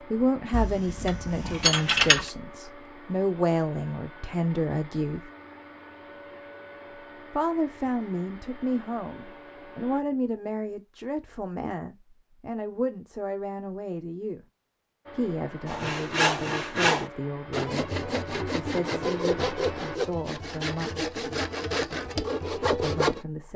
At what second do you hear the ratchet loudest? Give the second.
2 s.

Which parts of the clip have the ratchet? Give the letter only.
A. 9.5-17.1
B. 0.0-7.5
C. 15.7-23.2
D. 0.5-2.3
D.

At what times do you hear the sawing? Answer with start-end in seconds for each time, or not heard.
15.7-23.2.